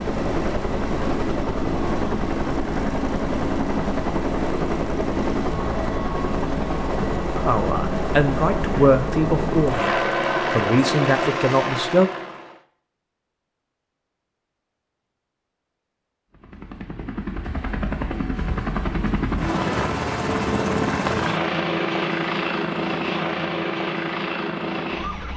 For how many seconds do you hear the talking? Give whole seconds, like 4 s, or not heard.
5 s.